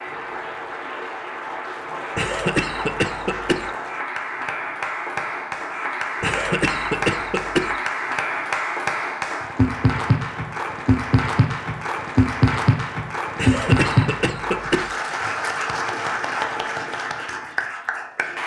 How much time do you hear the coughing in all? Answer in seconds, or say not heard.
5 s.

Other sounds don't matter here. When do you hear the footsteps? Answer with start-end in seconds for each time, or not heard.
not heard.